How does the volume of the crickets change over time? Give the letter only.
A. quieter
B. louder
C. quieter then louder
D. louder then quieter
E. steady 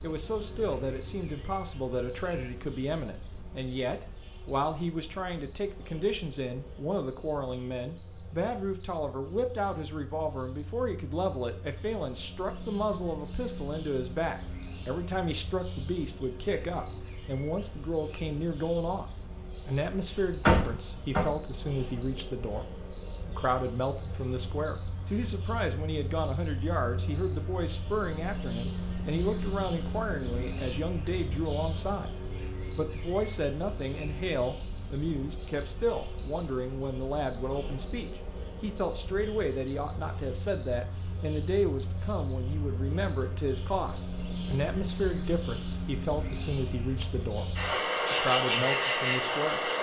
B.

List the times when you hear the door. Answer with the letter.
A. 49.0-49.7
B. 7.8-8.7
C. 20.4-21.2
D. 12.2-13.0
C.